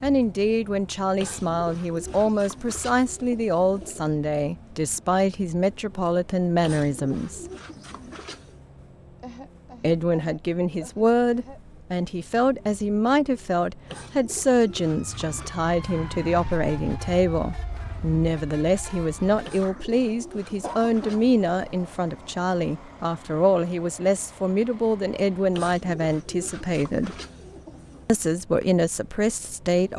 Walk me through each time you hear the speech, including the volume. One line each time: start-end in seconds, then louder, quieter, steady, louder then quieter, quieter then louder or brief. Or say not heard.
0.0-7.5 steady
9.8-27.1 steady
28.1-29.9 brief.